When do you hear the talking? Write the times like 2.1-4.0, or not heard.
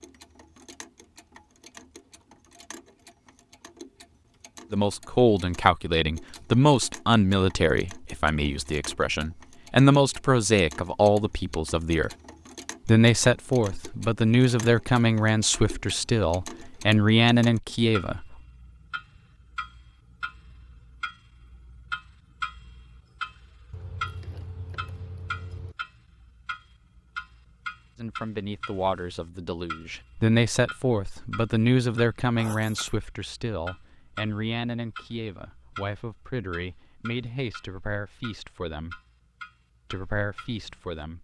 4.7-12.1, 12.8-18.4, 27.9-39.0, 39.9-41.1.